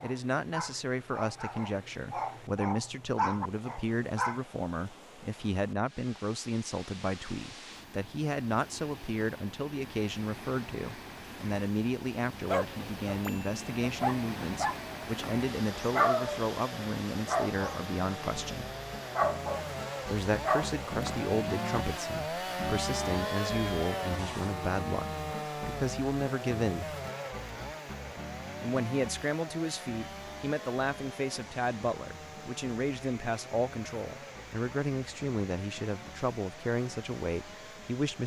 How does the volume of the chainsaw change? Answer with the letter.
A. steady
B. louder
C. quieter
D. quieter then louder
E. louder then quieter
E.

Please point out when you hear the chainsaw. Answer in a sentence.
The chainsaw can be heard from 12.6 to 38.2 s.